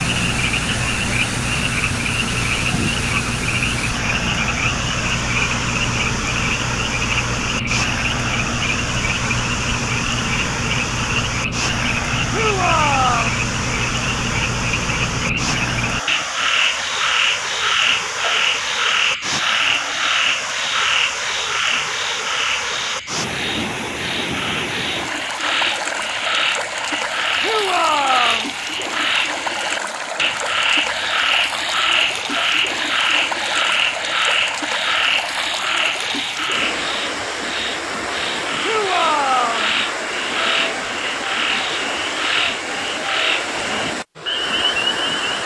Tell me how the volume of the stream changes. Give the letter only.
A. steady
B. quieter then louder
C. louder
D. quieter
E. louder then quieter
A.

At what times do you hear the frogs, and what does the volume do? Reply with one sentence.
You can hear the frogs from 0.0 to 45.4 s, at a steady volume.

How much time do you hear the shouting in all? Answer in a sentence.
You can hear the shouting for 3 seconds altogether.